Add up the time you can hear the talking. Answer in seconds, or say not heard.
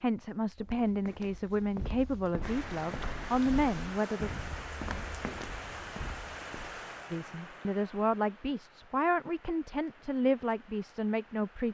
9 s.